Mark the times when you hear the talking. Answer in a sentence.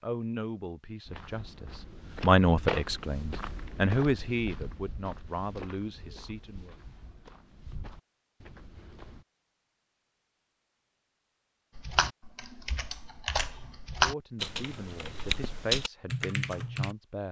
You can hear the talking from 0.0 to 6.8 s and from 14.0 to 17.2 s.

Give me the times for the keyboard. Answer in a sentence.
You can hear the keyboard from 11.8 to 16.9 s.